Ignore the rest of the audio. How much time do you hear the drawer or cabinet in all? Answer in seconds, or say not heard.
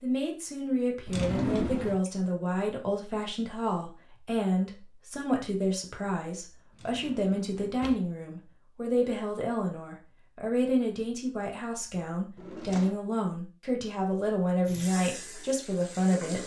3 s.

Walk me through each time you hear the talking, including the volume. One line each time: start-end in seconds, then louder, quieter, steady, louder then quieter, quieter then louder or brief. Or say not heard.
0.0-16.4 steady.